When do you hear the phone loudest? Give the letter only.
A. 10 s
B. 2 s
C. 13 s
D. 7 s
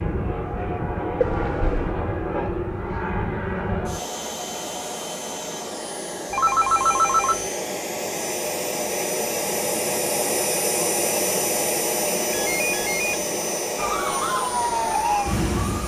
D.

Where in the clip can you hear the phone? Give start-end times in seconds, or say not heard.
1.2-1.9, 6.3-7.5, 12.3-13.1.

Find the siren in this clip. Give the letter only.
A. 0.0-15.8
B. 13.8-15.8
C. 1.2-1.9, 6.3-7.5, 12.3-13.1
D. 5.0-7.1
B.